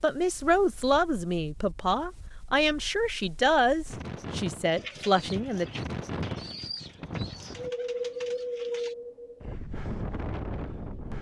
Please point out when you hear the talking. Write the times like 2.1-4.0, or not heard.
0.0-5.7.